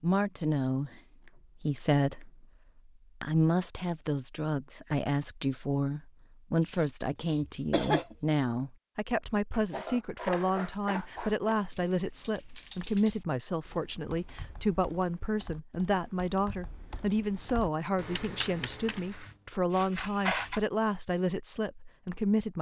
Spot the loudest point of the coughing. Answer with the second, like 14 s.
8 s.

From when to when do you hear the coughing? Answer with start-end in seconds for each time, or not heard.
6.7-8.2.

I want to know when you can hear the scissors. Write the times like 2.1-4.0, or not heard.
1.2-2.2, 9.5-11.6, 18.8-20.6.